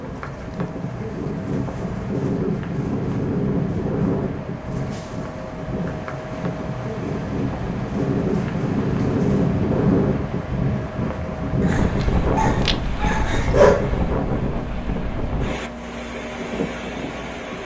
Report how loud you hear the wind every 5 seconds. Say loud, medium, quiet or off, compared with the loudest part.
loud, loud, loud, medium.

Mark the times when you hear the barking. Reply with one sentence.
The barking can be heard from 11.7 to 13.9 s.